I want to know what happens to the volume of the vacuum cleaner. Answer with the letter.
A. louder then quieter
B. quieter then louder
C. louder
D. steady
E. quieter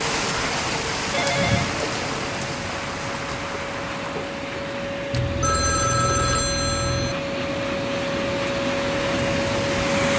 C.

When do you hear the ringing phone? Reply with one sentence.
The ringing phone can be heard from 1.1 to 1.8 s and from 5.1 to 7.2 s.